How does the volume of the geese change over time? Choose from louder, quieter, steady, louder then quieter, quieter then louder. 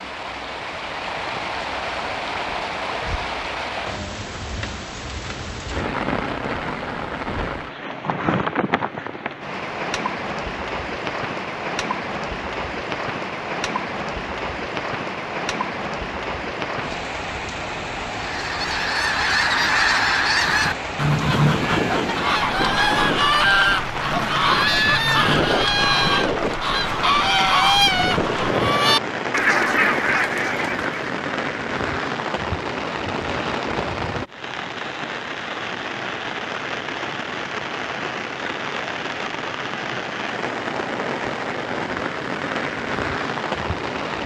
steady.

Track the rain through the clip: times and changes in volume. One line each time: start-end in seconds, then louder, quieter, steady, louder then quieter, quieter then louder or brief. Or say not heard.
0.0-44.2 steady.